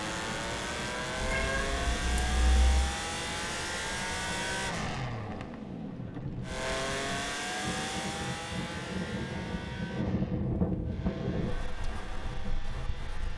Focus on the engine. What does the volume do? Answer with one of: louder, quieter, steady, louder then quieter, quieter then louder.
quieter.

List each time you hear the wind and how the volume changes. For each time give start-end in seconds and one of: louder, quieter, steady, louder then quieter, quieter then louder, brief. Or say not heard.
0.0-13.3 louder.